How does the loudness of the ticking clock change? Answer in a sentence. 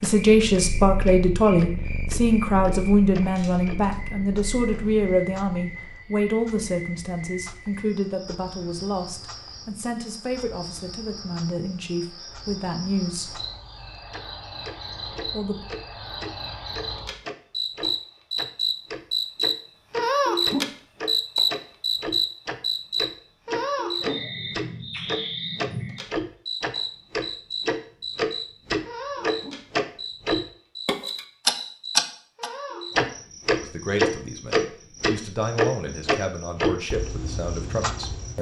The volume of the ticking clock goes down, then up.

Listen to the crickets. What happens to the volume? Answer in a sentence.
The volume of the crickets goes up, then down.